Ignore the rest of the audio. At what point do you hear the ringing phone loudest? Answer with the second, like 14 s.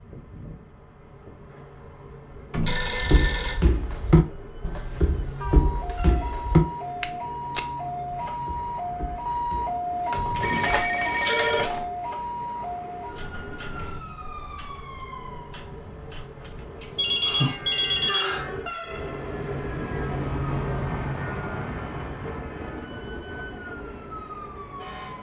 17 s.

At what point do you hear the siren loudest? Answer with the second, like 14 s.
10 s.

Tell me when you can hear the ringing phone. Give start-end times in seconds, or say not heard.
2.5-3.5, 10.1-11.8, 16.9-18.4.